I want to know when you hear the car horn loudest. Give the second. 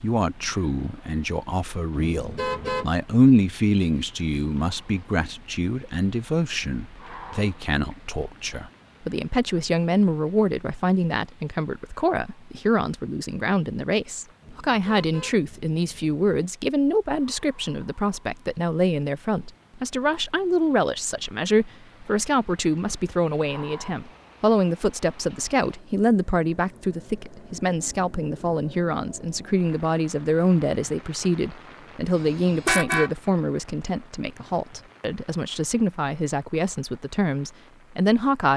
33 s.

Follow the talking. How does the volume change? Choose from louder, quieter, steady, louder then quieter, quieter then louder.
steady.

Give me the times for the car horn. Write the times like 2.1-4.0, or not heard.
1.9-2.9, 14.4-16.1, 32.1-33.1.